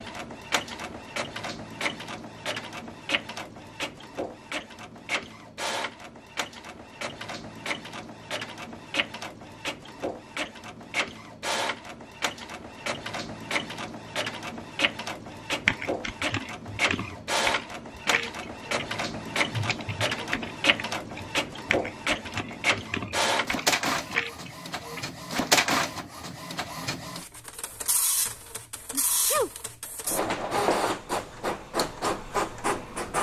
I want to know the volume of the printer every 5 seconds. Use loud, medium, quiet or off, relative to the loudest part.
medium, medium, medium, loud, loud, loud, loud.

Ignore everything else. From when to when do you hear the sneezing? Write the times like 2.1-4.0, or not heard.
28.9-29.5.